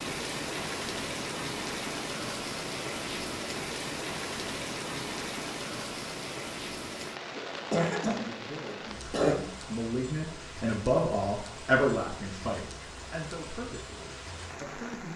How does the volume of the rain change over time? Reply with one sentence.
The volume of the rain goes down.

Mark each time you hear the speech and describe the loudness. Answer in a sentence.
The speech can be heard from 8.1 to 15.1 s, getting louder then quieter.